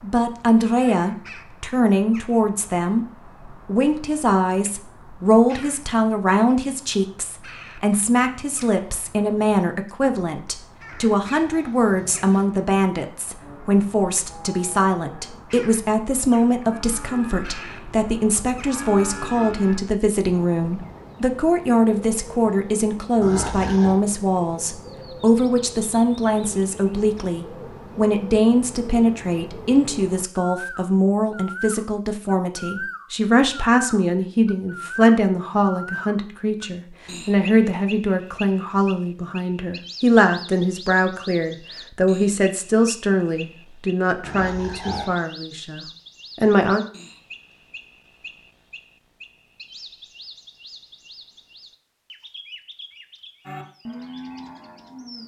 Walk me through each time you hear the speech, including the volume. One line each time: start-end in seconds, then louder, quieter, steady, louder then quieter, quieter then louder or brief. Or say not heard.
0.0-46.9 steady.